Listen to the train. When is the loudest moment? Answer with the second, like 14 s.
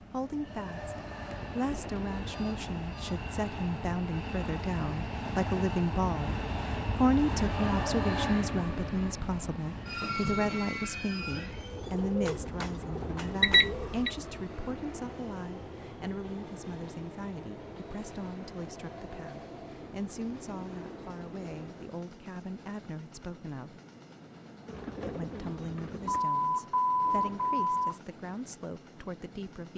8 s.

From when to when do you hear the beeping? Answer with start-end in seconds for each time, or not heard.
2.3-3.2, 13.4-14.1, 26.1-28.0.